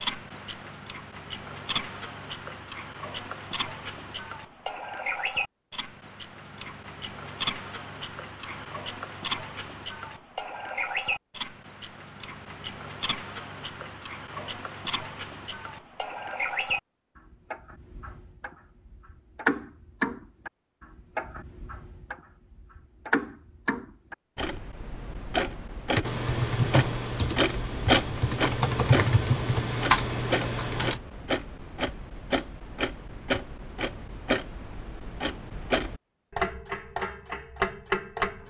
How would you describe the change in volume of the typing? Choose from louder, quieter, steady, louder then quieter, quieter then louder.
quieter then louder.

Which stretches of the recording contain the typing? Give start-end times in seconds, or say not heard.
25.9-31.0.